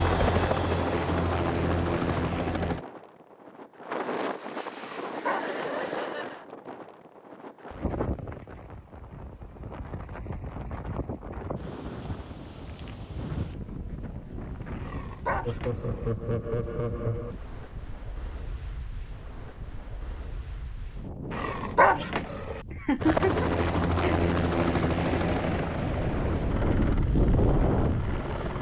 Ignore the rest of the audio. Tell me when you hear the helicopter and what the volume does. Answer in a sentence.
The helicopter can be heard briefly from 0.0 to 2.9 s; and from 23.0 to 28.5 s, getting quieter.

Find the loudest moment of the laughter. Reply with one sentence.
The loudest moment of the laughter is at 23 seconds.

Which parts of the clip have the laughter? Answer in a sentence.
The laughter can be heard from 5.1 to 6.5 s, from 15.4 to 17.4 s and from 22.7 to 24.2 s.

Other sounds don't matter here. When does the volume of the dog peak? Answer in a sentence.
The volume of the dog peaks at 22 seconds.